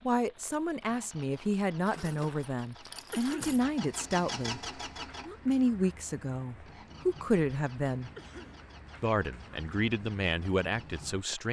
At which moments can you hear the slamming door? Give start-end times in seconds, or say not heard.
not heard.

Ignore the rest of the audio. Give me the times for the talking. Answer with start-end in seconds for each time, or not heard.
0.1-4.6, 5.2-8.1, 9.0-11.4.